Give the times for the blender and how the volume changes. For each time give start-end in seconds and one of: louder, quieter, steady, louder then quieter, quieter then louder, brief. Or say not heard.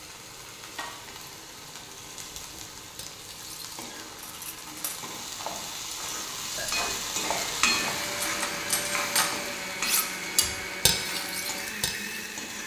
7.2-12.6 steady.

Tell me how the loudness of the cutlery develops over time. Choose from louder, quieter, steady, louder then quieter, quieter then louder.
louder then quieter.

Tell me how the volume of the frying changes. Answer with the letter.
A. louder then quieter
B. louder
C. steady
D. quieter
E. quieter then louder
A.